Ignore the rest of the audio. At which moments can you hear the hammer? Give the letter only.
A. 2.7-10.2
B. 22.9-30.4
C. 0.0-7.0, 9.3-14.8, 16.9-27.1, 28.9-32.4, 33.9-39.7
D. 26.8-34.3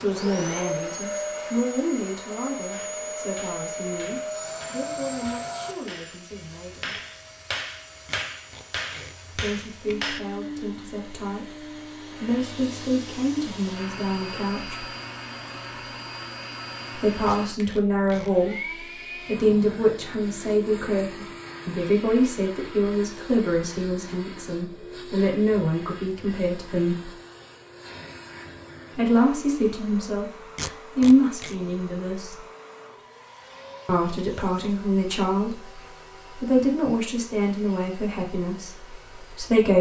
A.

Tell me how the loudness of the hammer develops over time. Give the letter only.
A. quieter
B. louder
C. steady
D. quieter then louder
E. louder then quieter
B.